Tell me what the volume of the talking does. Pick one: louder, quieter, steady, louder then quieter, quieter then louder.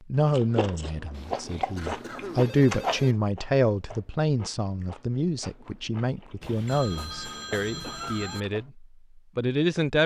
louder then quieter.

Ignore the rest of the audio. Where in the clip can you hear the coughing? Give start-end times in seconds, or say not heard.
1.8-2.5, 7.8-8.5.